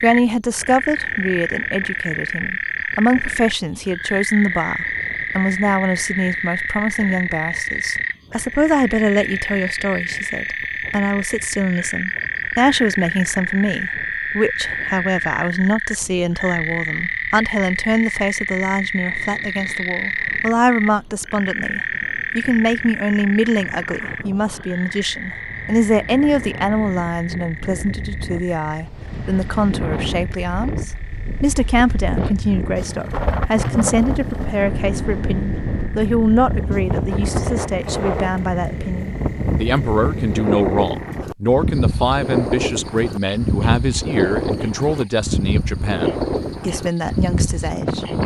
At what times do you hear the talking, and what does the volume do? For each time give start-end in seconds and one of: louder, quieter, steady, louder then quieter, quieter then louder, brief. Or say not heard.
0.0-48.0 steady.